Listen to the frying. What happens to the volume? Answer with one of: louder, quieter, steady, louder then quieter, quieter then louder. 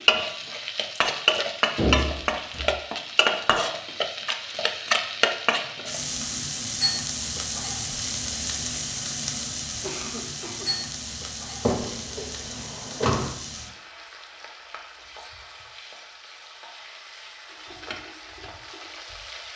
quieter.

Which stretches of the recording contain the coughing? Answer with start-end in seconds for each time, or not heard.
9.8-10.8.